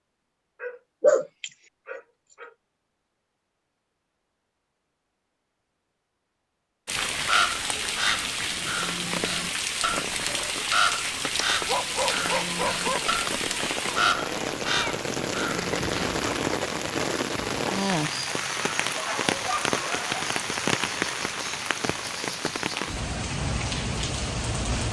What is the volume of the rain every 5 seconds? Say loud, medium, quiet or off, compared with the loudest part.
off, loud, loud, loud, loud.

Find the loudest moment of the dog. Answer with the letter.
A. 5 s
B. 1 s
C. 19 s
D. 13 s
B.